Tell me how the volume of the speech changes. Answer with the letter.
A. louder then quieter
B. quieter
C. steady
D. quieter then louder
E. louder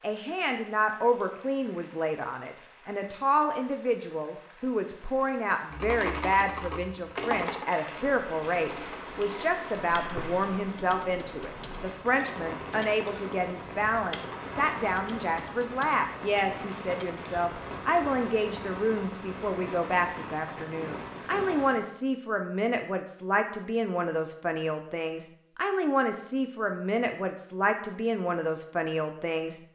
C.